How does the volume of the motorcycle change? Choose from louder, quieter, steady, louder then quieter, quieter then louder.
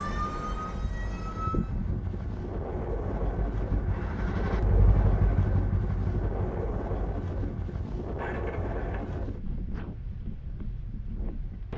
louder then quieter.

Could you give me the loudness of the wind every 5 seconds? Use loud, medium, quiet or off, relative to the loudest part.
loud, loud, medium.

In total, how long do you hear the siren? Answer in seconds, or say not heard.
2 s.